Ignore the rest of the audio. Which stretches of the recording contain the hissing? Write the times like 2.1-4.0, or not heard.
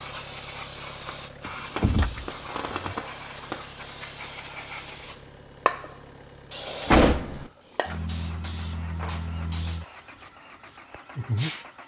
0.0-11.7.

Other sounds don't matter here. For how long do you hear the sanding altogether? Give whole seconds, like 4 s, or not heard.
not heard.